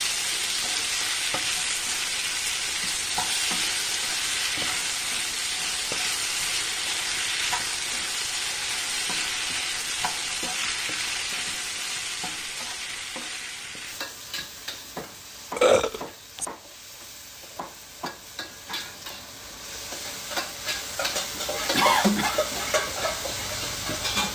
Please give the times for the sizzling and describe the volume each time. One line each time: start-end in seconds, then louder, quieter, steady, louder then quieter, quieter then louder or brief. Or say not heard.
0.0-24.3 quieter then louder.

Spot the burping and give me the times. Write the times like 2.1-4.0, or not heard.
15.6-16.4.